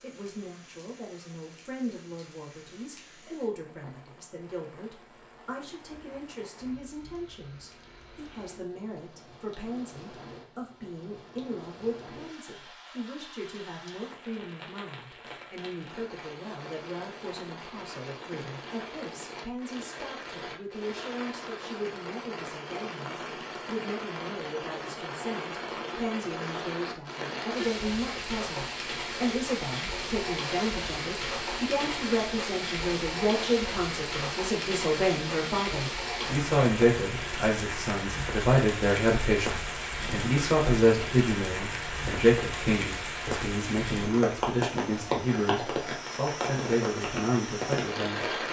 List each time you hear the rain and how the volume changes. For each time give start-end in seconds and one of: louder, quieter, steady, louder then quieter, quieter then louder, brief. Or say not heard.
0.0-48.4 louder.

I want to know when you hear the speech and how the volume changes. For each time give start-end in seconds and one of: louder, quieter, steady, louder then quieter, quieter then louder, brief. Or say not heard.
0.0-48.2 louder.